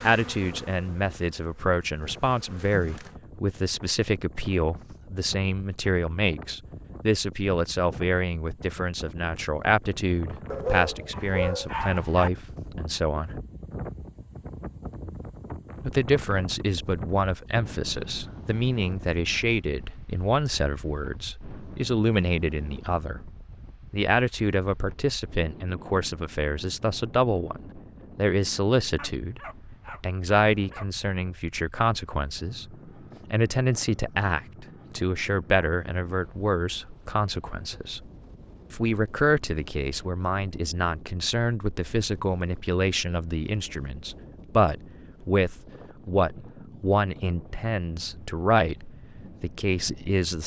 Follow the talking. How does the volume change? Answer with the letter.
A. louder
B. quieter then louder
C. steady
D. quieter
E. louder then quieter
C.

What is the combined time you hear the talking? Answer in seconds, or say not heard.
47 s.